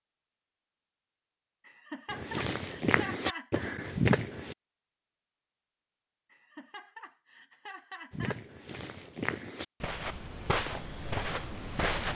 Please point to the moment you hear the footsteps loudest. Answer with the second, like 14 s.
4 s.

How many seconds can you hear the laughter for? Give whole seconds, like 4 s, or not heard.
4 s.